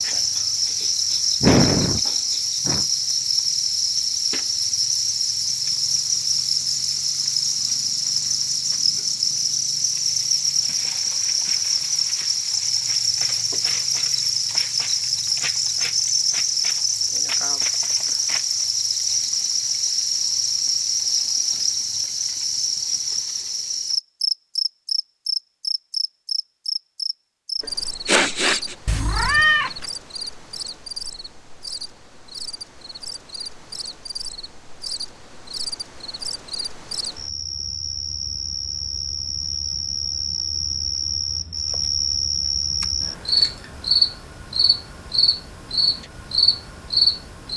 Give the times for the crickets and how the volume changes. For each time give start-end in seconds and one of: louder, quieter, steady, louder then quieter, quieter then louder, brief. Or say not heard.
0.0-47.5 quieter then louder.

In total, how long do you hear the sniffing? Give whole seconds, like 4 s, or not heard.
3 s.